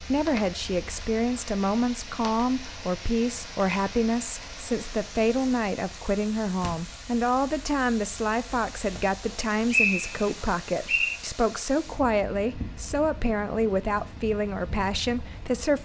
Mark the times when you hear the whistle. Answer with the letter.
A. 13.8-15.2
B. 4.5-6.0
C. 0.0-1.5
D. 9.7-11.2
D.